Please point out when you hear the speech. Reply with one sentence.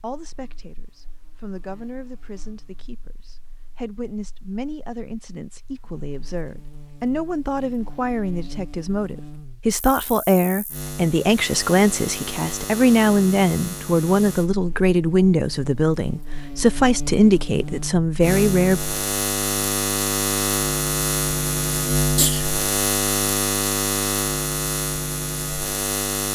The speech can be heard from 0.0 to 18.8 s.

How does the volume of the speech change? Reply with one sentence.
The volume of the speech goes up.